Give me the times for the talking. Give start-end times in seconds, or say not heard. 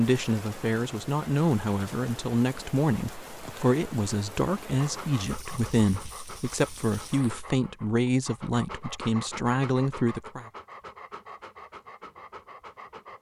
0.0-10.4.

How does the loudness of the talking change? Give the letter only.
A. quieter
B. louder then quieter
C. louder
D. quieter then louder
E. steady
E.